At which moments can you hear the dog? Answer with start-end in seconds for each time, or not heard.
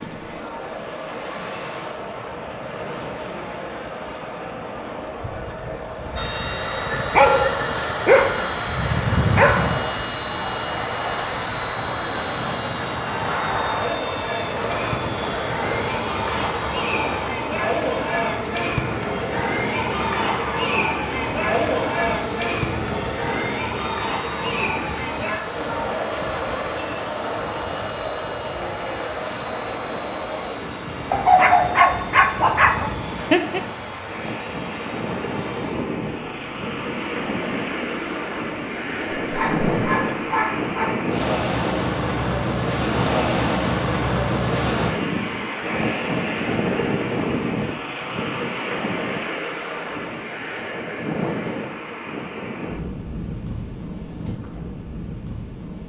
7.0-9.8, 31.1-33.6, 39.2-41.0.